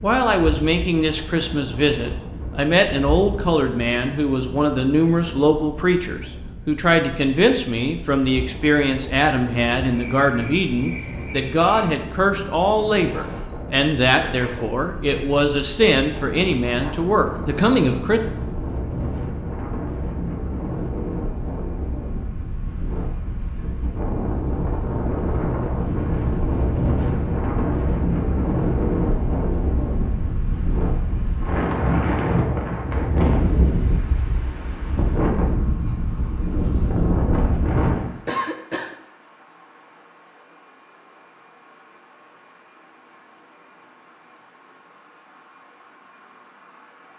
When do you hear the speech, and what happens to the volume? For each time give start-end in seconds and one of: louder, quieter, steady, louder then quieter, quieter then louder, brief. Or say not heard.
0.0-18.2 steady.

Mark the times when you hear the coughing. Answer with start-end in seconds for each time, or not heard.
38.2-39.0.